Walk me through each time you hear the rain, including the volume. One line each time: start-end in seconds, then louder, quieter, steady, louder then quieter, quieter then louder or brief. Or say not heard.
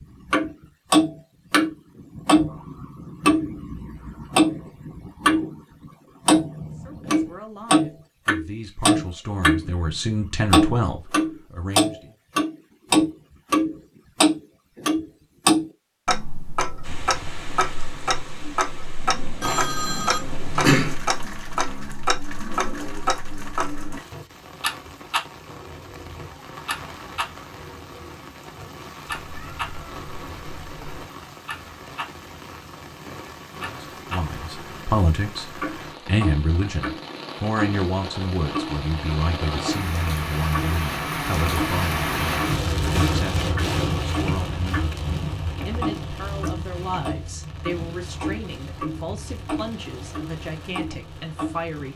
16.8-51.9 louder then quieter.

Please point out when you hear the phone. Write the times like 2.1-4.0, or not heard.
19.4-20.9.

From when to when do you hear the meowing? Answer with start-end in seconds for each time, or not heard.
29.1-31.1.